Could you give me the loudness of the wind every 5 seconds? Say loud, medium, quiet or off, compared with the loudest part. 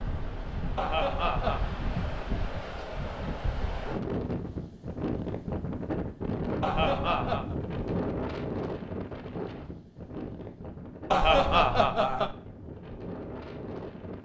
loud, loud, medium.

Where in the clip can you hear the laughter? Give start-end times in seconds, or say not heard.
0.8-1.7, 6.6-7.5, 11.1-12.3.